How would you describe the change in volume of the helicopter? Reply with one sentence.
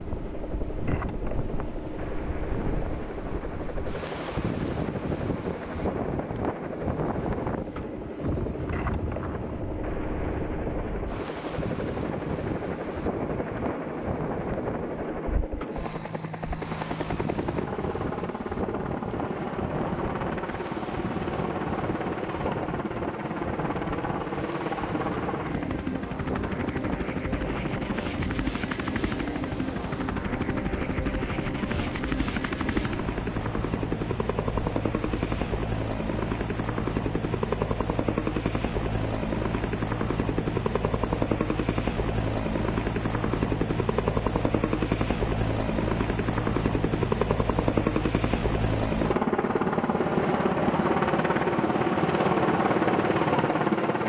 The volume of the helicopter goes up.